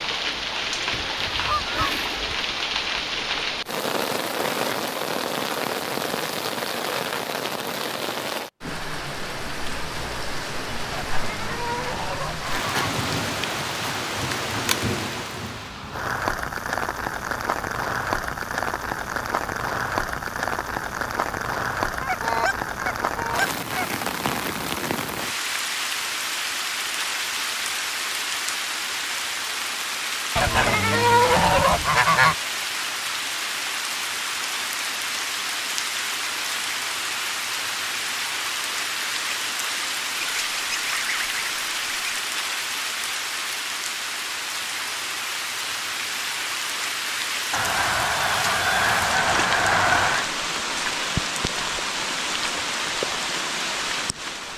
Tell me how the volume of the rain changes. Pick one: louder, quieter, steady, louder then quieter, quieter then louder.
steady.